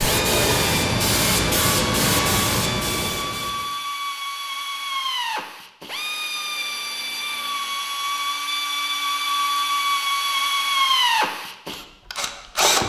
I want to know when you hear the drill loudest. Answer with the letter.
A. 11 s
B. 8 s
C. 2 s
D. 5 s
A.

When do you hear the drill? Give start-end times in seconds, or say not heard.
0.0-12.8.